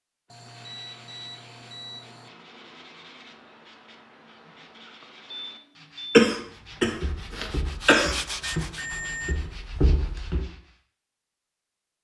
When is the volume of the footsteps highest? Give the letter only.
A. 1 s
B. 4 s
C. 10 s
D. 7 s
C.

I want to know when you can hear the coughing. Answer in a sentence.
The coughing can be heard from 6.1 to 8.2 s.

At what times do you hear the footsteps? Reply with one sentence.
The footsteps can be heard from 7.0 to 10.4 s.